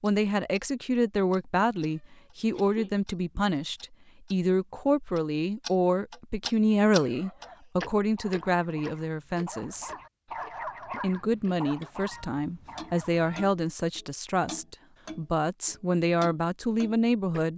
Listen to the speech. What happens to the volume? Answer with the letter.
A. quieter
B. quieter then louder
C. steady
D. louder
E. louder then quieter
C.